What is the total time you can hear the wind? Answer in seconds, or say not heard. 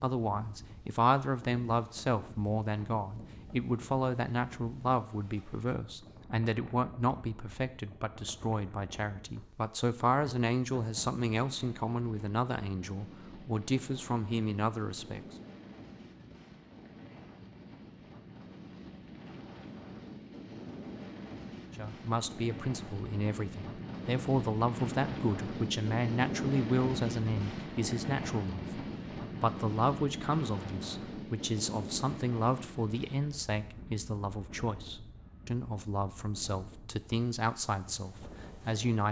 39 s.